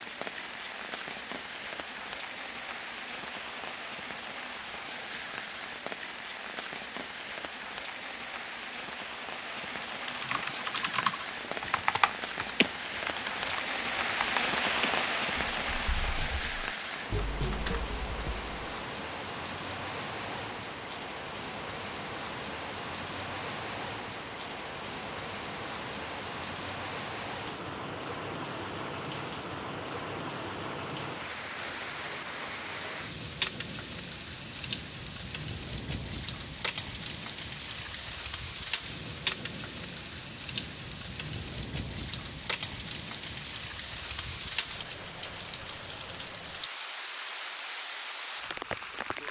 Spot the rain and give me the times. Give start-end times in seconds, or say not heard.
0.0-49.2.